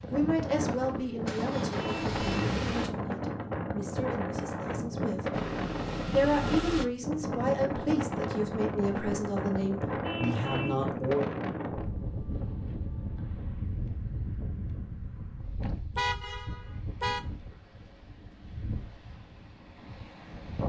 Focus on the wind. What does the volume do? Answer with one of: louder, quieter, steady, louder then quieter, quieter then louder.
quieter.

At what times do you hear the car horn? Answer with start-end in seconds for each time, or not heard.
1.8-2.5, 10.0-10.8, 15.9-17.2.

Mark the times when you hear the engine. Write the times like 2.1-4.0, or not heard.
0.0-2.9, 5.3-6.8.